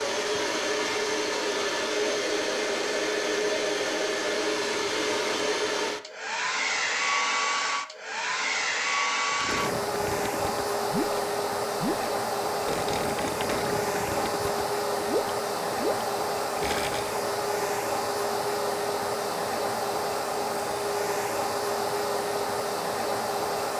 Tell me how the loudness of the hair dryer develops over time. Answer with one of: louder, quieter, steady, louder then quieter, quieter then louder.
steady.